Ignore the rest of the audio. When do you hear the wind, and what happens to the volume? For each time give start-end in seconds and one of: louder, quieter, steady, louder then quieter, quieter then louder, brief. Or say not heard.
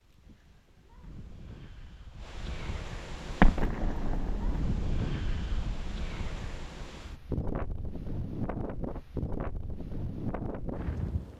0.0-11.3 louder.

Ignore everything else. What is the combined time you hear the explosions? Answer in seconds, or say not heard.
3 s.